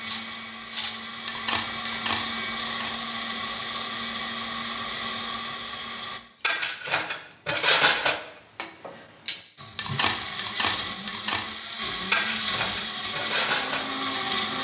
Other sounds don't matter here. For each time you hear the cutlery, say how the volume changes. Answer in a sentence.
The cutlery can be heard briefly from 0.0 to 3.0 s; from 6.4 to 11.4 s, getting louder then quieter; and briefly from 12.1 to 14.3 s.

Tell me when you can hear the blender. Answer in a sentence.
The blender can be heard from 0.0 to 6.2 s and from 9.6 to 14.5 s.